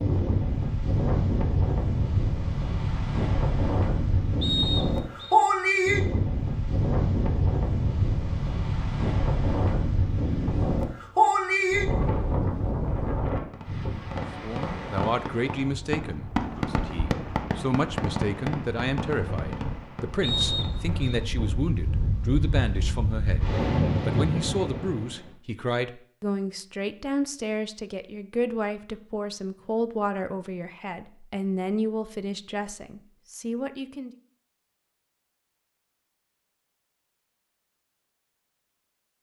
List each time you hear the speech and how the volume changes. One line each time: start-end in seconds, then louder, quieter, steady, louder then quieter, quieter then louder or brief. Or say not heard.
14.4-34.1 steady.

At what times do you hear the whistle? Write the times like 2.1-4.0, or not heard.
4.4-5.3, 20.2-21.2.